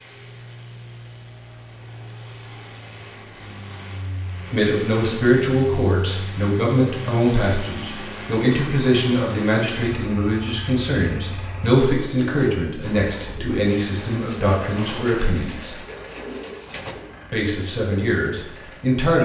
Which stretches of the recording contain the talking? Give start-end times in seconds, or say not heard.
4.5-15.8, 17.3-19.1.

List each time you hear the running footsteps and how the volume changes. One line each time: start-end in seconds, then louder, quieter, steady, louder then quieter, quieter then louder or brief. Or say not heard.
not heard.